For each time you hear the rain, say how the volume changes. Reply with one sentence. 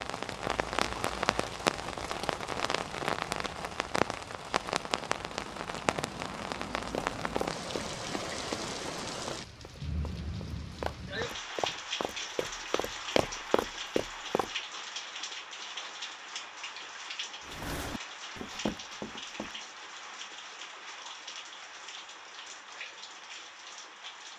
You can hear the rain from 0.0 to 24.3 s, getting quieter.